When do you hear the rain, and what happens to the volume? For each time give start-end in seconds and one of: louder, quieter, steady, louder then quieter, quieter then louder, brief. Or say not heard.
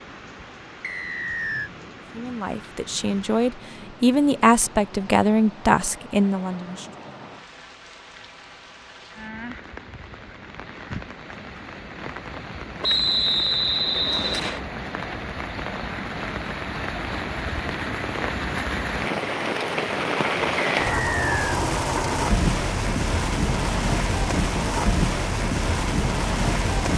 0.0-26.9 louder.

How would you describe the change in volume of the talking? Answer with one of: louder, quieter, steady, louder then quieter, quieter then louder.
louder.